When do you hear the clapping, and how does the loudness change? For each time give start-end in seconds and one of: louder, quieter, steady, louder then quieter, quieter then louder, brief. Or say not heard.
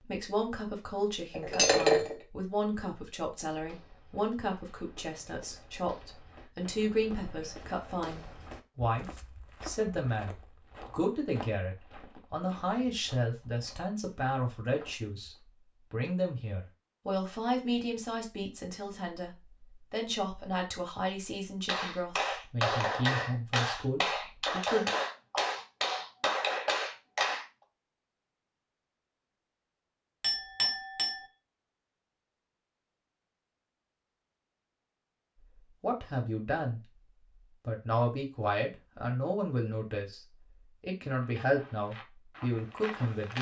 21.6-27.4 steady.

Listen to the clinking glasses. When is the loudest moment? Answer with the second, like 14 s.
2 s.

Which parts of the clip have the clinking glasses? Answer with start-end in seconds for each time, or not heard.
1.3-2.1, 30.2-31.2.